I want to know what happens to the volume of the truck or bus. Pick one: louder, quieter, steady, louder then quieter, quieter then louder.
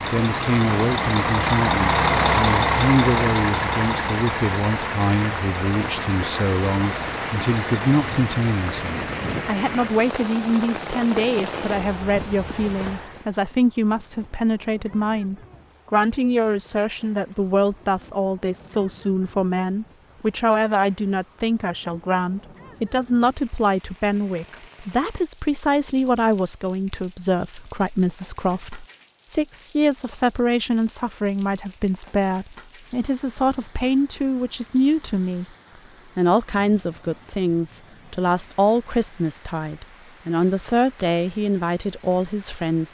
quieter.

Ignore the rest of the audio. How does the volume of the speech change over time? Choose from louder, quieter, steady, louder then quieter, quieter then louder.
steady.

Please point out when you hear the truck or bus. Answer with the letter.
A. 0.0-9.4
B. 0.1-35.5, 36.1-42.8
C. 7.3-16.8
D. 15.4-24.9
A.